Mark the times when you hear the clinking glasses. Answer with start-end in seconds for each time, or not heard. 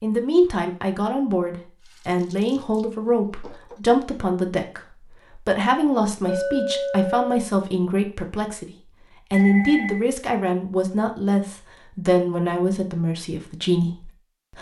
6.2-7.5.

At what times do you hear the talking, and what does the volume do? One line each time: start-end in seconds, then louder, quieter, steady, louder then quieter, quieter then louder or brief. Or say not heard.
0.0-14.5 steady.